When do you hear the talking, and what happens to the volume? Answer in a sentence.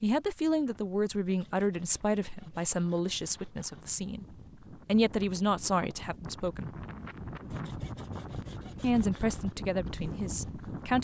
You can hear the talking from 0.0 to 4.2 s, getting quieter; briefly from 4.8 to 6.7 s; and briefly from 8.8 to 11.0 s.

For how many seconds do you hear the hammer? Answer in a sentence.
You can't hear the hammer here.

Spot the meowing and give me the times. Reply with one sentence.
The meowing can't be heard in this clip.